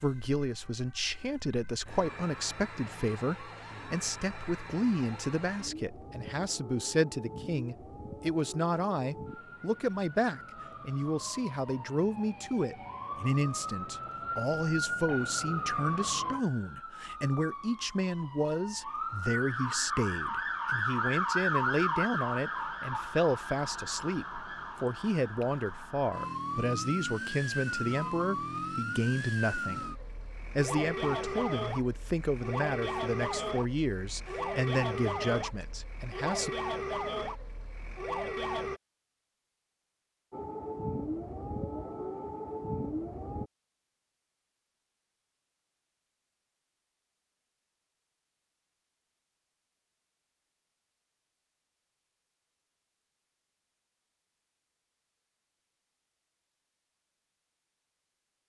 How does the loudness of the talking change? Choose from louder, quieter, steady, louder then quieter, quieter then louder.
steady.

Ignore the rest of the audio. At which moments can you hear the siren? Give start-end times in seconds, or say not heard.
0.0-38.8, 40.3-43.5.